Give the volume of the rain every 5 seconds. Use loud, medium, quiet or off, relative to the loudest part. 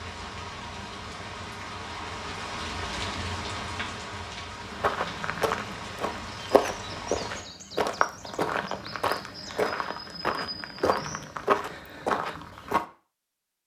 loud, loud, off.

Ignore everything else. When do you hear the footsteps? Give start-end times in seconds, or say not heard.
4.7-12.8.